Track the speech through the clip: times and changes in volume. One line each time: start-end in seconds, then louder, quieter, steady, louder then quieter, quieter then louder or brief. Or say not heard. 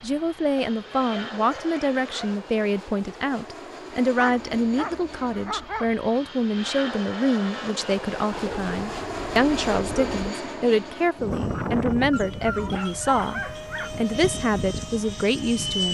0.0-15.9 steady.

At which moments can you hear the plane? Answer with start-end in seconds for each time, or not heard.
0.0-15.9.